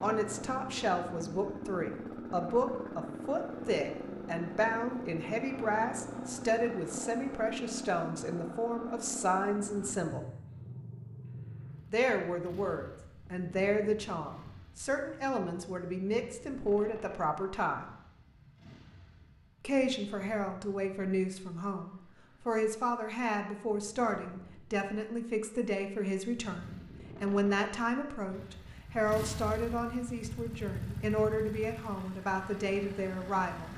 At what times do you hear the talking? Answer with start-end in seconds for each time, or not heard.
0.0-10.2, 11.9-17.9, 19.6-33.7.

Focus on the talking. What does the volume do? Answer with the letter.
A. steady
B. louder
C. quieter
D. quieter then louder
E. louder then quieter
A.